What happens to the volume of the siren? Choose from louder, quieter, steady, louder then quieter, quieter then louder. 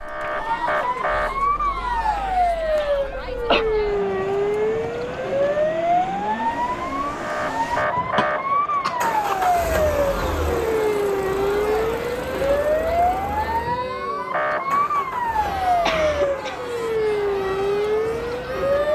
steady.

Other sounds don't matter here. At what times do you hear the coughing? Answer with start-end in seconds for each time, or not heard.
2.8-3.6, 8.2-9.3, 15.8-16.6.